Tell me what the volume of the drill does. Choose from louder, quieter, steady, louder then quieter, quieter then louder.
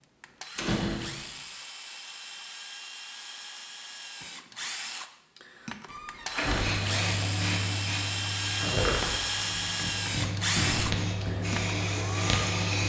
louder.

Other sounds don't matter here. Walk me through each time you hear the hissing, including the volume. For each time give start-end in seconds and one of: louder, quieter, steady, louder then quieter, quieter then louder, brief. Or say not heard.
6.4-12.8 quieter then louder.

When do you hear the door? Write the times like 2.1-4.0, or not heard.
0.6-1.3, 5.8-6.8, 10.6-11.2.